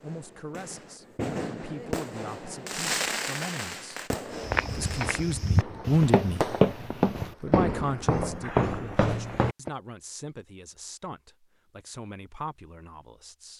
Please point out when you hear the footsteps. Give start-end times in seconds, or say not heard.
4.4-9.7.